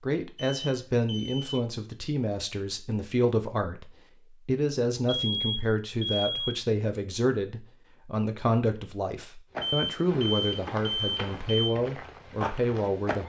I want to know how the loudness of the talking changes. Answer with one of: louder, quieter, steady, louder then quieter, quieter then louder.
steady.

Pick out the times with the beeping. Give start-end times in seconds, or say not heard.
0.3-1.6, 5.2-6.6, 9.6-11.7.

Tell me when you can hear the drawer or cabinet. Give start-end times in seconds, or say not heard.
not heard.